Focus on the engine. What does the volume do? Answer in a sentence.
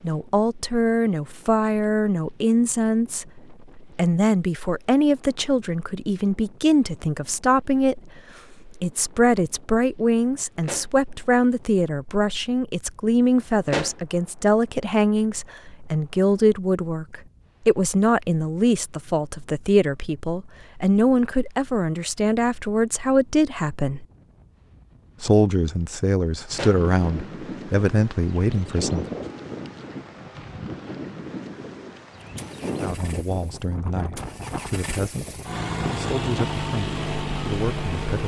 The volume of the engine goes up.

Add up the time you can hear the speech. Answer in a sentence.
The speech can be heard for 33 seconds in total.